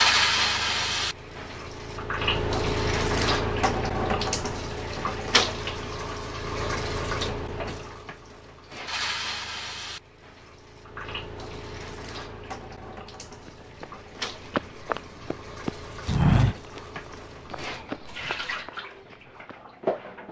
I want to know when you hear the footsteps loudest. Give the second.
16 s.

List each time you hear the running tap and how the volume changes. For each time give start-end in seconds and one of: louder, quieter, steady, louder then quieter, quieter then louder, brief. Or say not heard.
0.0-20.2 quieter.